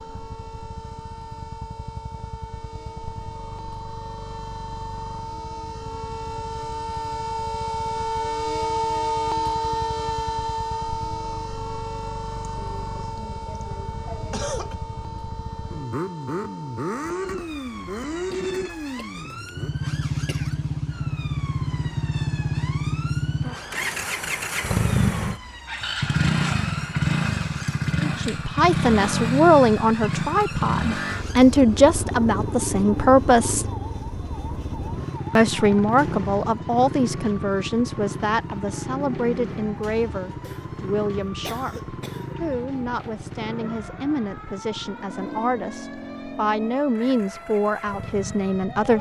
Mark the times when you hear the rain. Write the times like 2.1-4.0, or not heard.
not heard.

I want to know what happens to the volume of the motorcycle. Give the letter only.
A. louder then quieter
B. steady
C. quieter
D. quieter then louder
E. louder
A.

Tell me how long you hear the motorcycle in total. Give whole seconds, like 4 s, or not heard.
49 s.